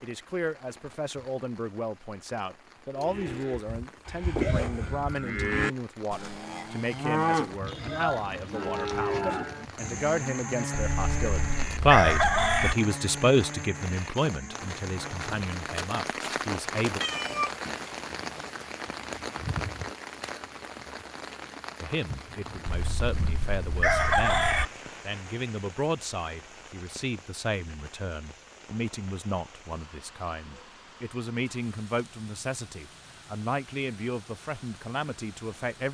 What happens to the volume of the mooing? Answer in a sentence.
The volume of the mooing goes down.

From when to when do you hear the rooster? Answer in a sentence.
You can hear the rooster from 10.9 to 12.8 s and from 22.6 to 24.6 s.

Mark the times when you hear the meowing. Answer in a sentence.
The meowing can be heard from 17.0 to 18.4 s.